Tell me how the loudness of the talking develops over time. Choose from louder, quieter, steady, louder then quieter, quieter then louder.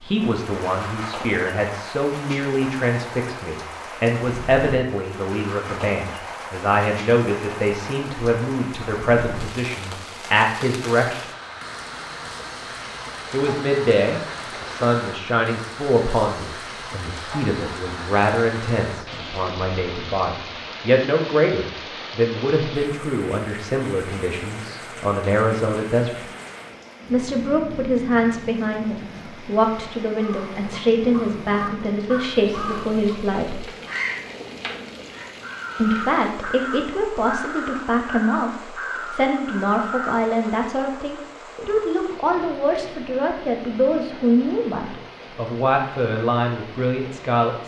steady.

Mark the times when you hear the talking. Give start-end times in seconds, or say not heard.
0.0-11.2, 13.3-26.2, 27.1-33.7, 35.8-47.6.